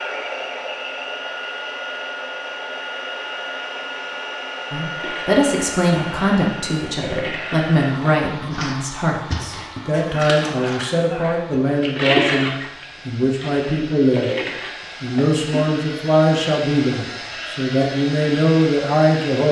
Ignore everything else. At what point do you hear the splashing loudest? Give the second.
12 s.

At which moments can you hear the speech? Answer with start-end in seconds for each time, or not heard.
4.7-14.3, 15.0-19.4.